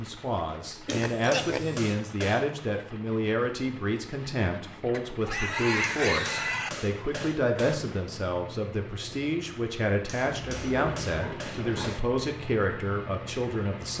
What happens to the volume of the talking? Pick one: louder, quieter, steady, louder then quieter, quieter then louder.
steady.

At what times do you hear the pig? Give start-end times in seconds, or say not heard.
0.8-1.9, 4.9-6.7, 10.2-11.9.